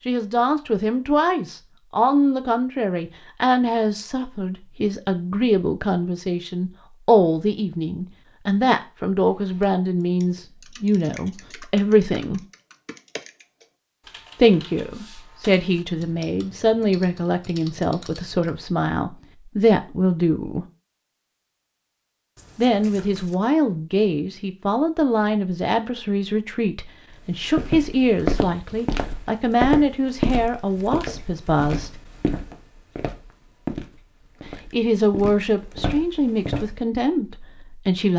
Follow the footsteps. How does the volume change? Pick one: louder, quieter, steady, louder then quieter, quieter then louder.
quieter.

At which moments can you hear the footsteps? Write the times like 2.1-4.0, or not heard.
27.3-36.7.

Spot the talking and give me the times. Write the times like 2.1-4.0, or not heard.
0.1-12.4, 14.3-20.6, 22.6-31.9, 34.7-38.1.